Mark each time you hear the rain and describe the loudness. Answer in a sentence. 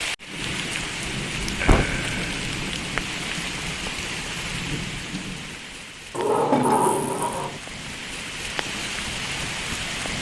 The rain can be heard from 0.0 to 10.1 s, getting quieter then louder.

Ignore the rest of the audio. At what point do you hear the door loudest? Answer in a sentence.
The volume of the door peaks at 7 seconds.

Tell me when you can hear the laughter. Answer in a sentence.
You can hear the laughter from 1.6 to 2.4 s.